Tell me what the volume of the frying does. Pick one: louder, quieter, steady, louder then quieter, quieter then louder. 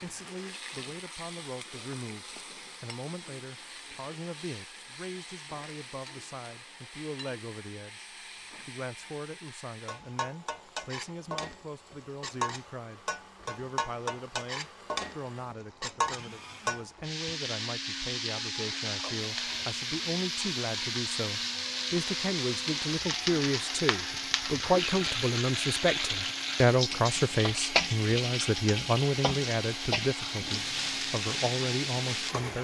louder.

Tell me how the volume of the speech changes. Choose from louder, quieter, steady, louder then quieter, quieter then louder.
louder.